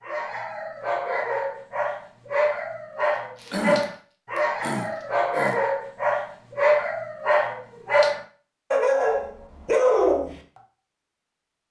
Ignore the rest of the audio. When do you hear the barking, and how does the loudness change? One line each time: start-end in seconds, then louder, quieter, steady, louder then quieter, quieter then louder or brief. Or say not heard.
0.0-10.3 louder.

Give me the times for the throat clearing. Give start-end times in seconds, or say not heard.
3.4-5.6.